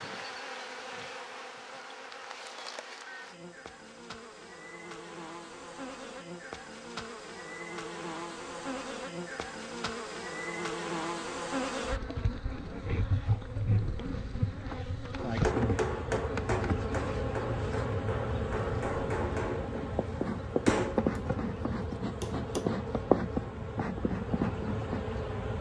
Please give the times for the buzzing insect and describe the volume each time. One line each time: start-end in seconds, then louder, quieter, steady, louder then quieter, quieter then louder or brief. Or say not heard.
0.0-25.5 louder.